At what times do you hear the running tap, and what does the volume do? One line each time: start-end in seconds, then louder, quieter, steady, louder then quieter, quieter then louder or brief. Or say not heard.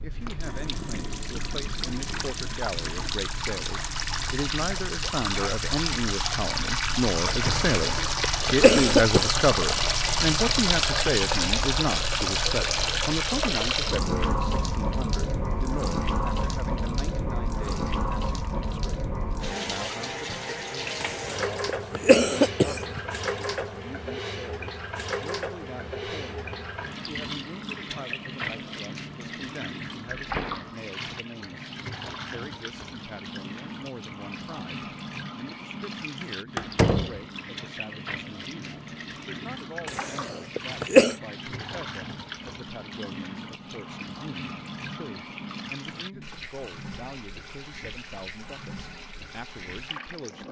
0.0-50.4 quieter.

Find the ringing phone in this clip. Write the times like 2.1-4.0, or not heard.
not heard.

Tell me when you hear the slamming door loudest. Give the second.
37 s.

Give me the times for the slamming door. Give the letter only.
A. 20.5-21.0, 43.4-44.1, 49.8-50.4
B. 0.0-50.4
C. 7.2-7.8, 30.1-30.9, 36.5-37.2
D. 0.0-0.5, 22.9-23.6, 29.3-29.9
C.